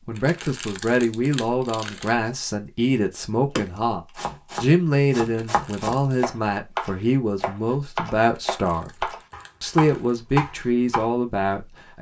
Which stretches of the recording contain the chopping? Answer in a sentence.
The chopping can be heard from 3.5 to 11.1 s.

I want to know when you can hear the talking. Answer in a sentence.
You can hear the talking from 0.1 to 4.0 s and from 4.6 to 11.9 s.